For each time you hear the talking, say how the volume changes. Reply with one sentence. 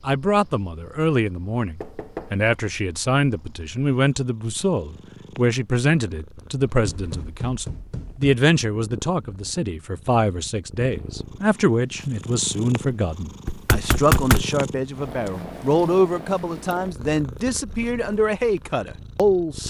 You can hear the talking from 0.0 to 19.6 s, at a steady volume.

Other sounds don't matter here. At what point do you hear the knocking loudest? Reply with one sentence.
The loudest moment of the knocking is at 14 seconds.